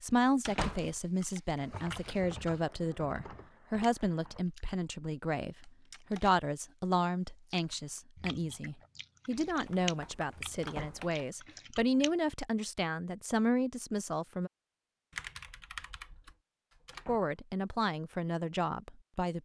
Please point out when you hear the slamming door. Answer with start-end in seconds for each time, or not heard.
0.5-0.9, 10.6-11.2, 16.9-17.3.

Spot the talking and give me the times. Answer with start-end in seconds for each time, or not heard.
0.0-14.5, 17.1-19.4.